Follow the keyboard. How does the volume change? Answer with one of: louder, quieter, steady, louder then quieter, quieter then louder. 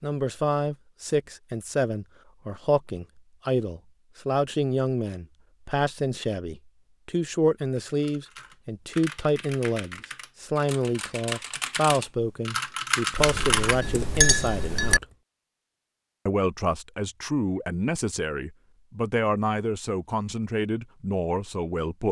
louder.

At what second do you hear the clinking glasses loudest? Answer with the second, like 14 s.
14 s.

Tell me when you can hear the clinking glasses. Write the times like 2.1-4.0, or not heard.
13.2-15.0.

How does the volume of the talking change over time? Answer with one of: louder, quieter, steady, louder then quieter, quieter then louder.
steady.